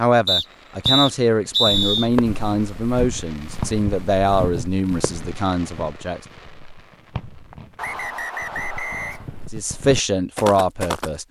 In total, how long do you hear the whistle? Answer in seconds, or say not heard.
3 s.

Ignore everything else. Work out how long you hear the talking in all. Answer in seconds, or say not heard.
8 s.